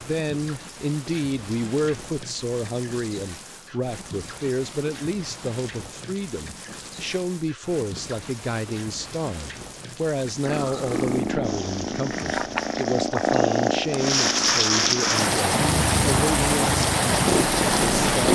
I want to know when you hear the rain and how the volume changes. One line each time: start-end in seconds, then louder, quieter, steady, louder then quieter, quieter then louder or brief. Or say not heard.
0.0-18.2 louder.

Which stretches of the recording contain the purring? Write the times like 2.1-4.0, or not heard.
10.4-18.2.